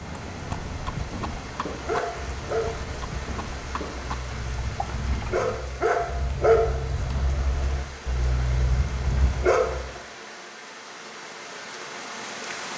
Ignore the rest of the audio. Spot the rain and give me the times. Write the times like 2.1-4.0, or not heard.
0.0-12.7.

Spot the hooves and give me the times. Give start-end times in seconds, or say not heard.
0.0-5.6.